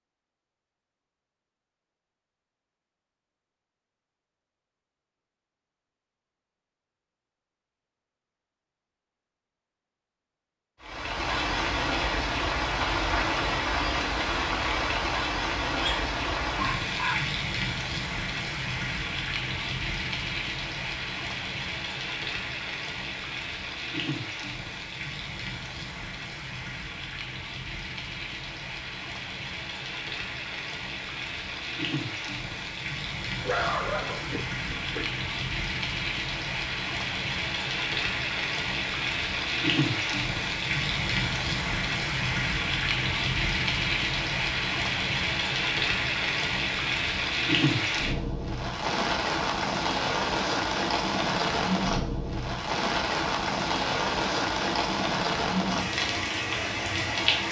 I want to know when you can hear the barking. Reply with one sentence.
The barking can be heard from 15.8 to 17.3 s and from 33.4 to 35.1 s.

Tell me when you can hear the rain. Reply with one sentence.
The rain can be heard from 10.8 to 57.4 s.